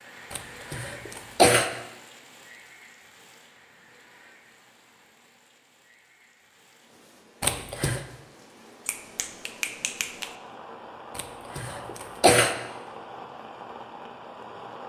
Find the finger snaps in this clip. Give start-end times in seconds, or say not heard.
8.8-10.3.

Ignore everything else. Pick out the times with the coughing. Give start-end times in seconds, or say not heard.
0.3-1.7, 7.4-8.0, 11.2-12.6.